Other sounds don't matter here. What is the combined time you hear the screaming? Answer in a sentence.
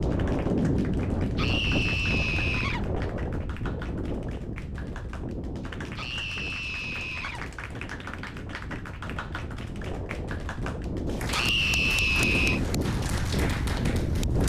You can hear the screaming for 4 seconds altogether.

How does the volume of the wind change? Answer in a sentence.
The volume of the wind goes down, then up.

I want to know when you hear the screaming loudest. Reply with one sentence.
The loudest moment of the screaming is at 12 seconds.